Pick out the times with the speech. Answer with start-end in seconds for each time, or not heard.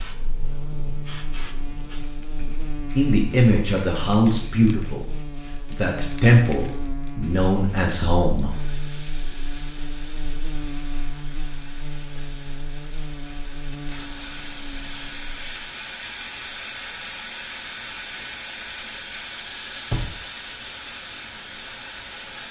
3.0-8.6.